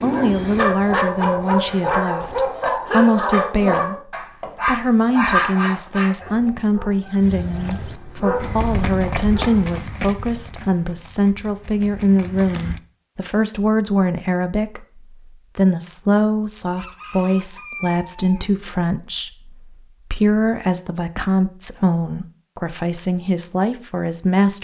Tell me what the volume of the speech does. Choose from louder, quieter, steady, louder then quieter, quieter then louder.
steady.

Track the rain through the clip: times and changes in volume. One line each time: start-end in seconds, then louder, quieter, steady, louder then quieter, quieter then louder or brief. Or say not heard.
not heard.